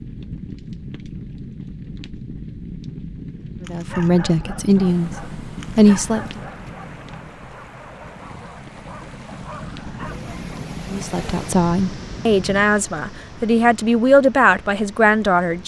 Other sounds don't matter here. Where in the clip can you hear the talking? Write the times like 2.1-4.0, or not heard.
3.7-6.4, 10.8-15.6.